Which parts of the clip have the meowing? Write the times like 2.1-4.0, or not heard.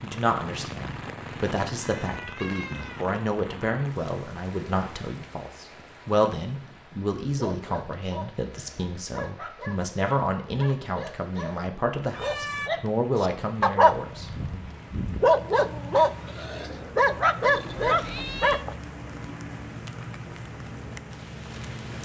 1.8-3.1, 12.0-12.7, 17.4-18.6.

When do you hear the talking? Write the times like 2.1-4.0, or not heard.
0.0-14.6.